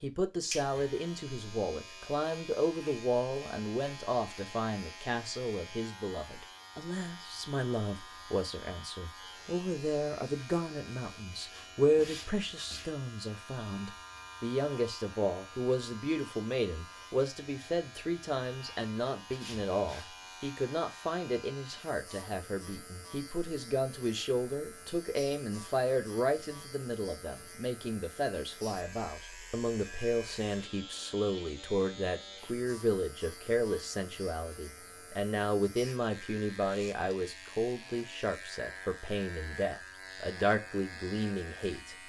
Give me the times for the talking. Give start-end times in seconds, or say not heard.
0.0-42.0.